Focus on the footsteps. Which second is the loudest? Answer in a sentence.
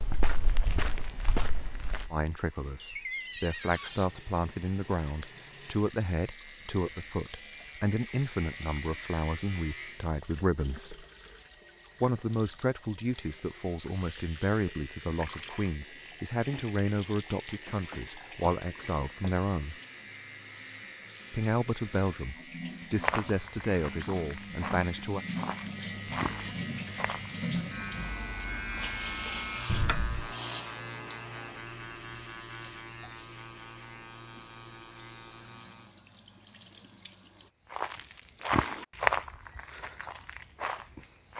The loudest moment of the footsteps is at 39 seconds.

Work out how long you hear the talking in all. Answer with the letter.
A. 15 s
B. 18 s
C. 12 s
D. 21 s
D.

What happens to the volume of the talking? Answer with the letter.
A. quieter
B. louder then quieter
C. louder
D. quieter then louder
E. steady
E.